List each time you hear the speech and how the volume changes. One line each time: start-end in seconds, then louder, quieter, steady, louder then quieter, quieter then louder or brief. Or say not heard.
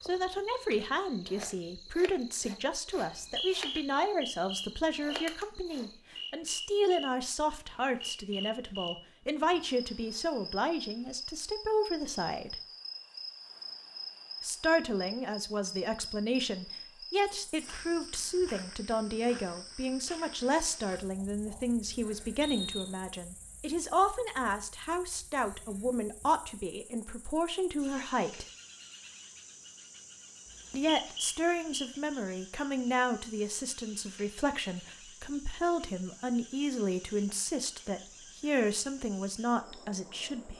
0.0-12.6 steady
14.4-28.4 steady
30.7-40.5 steady.